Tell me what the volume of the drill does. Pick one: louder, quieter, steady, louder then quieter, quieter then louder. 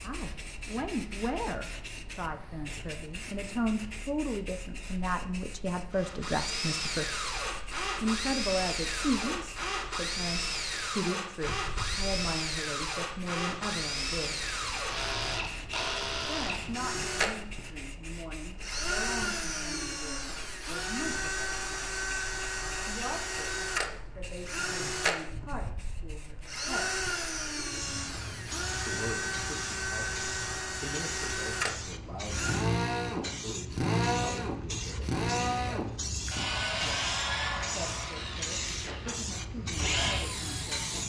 steady.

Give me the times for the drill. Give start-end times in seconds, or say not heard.
5.9-41.0.